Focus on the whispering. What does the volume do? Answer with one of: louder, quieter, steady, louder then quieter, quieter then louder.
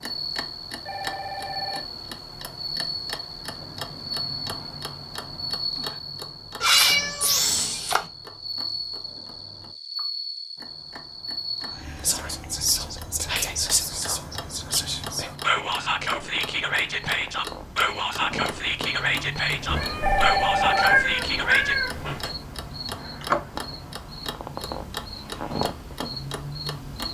steady.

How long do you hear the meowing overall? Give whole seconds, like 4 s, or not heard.
4 s.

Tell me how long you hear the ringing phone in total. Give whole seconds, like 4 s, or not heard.
2 s.